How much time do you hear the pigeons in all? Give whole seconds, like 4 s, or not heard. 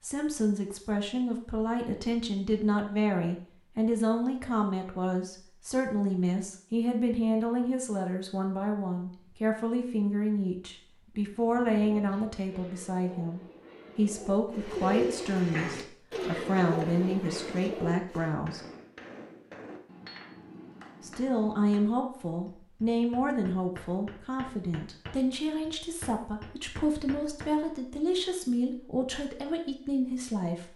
7 s.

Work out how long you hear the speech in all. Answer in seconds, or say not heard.
28 s.